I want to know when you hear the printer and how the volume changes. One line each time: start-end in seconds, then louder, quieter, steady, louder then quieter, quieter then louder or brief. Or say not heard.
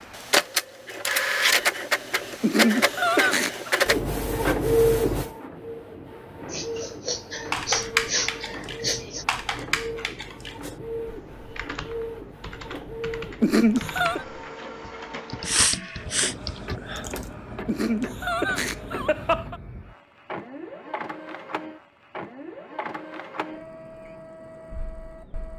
0.0-25.5 quieter.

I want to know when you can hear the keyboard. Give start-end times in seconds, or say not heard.
7.5-17.3.